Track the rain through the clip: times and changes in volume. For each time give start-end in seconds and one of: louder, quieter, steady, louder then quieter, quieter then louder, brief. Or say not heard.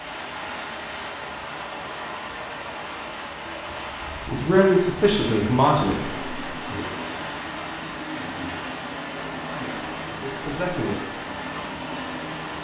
0.0-12.6 steady.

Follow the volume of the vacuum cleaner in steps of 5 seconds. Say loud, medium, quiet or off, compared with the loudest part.
off, loud, loud.